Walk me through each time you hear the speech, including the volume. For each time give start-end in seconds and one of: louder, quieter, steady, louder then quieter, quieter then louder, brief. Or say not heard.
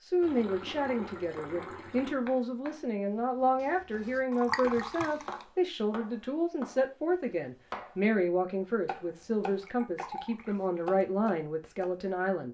0.0-12.4 steady.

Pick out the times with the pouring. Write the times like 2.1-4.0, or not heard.
0.2-2.2, 4.3-5.5, 9.4-10.8.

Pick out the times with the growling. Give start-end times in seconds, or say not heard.
not heard.